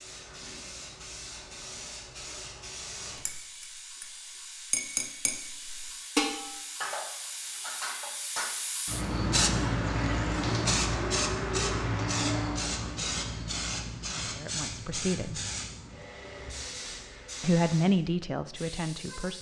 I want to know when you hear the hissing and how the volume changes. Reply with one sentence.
You can hear the hissing from 0.0 to 19.3 s, getting louder then quieter.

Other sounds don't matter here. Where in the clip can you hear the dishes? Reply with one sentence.
You can hear the dishes from 3.1 to 5.3 s and from 6.2 to 8.6 s.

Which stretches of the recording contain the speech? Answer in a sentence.
The speech can be heard from 14.2 to 15.4 s and from 17.4 to 19.3 s.